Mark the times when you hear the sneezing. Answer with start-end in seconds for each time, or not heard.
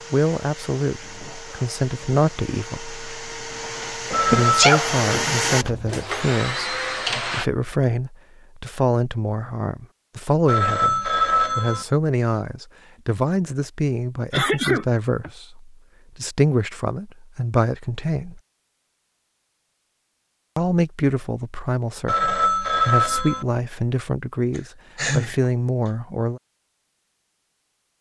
4.3-5.0, 14.3-15.3, 24.6-25.4.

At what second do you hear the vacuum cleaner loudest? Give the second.
5 s.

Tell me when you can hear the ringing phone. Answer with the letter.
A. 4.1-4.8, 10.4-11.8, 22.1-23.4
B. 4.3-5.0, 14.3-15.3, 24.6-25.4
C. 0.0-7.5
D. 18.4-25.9
A.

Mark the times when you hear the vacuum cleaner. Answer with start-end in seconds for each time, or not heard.
0.0-7.5.